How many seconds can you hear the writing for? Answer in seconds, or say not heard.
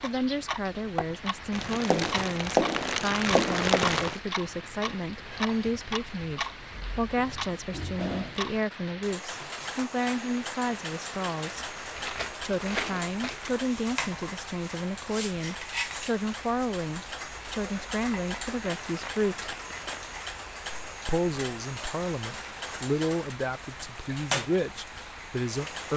2 s.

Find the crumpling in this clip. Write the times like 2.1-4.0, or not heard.
1.5-4.2, 11.9-13.6, 18.9-20.1.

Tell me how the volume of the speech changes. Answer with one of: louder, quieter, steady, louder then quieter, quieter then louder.
steady.